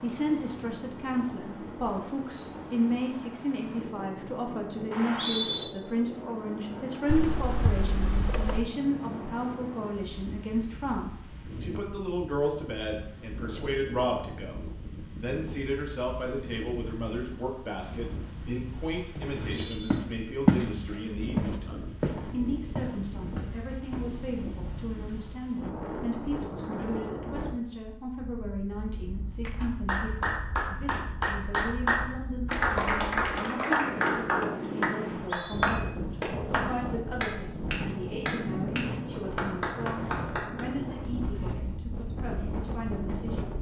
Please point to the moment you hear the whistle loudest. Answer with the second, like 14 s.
5 s.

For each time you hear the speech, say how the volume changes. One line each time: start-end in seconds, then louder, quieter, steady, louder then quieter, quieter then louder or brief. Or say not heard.
0.0-43.5 quieter.